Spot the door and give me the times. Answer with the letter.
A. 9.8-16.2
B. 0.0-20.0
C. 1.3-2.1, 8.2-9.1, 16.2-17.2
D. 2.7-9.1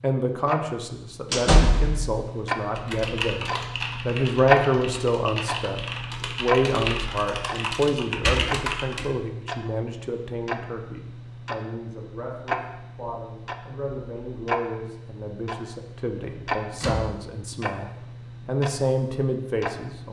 C.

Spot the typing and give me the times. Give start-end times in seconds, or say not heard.
2.7-9.1.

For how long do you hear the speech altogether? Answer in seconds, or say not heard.
20 s.